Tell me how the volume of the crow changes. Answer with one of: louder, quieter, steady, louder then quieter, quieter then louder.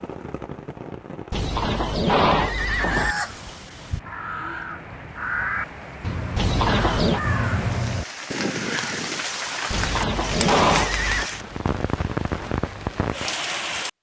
louder.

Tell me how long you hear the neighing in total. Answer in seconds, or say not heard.
4 s.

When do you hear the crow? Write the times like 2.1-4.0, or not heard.
2.9-9.2.